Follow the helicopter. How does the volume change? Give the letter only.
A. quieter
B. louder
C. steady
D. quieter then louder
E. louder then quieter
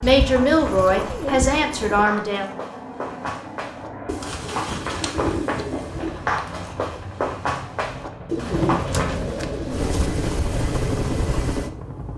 B.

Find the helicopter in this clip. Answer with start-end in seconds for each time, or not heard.
0.0-12.1.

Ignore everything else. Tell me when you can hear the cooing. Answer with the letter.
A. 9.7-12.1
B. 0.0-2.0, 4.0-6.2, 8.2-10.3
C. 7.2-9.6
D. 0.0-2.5
B.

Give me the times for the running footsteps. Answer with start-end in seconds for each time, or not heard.
0.2-9.2.